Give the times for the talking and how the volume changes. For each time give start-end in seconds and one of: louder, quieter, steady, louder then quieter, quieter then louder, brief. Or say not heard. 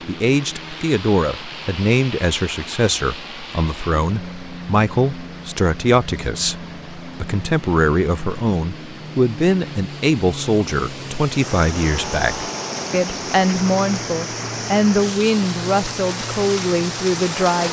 0.1-17.6 steady.